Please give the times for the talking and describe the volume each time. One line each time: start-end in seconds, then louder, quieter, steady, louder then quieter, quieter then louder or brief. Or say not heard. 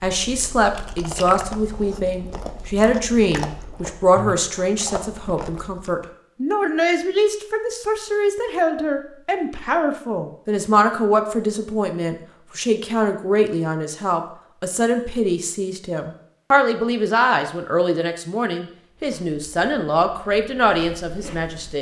0.0-21.7 steady.